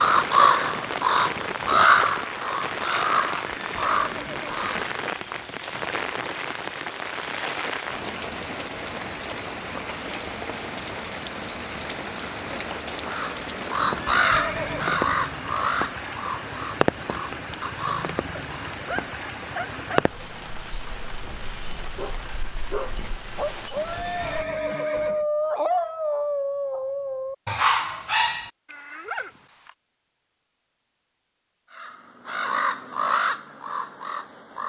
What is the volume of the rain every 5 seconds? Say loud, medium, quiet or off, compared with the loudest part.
loud, loud, loud, loud, medium, off, off.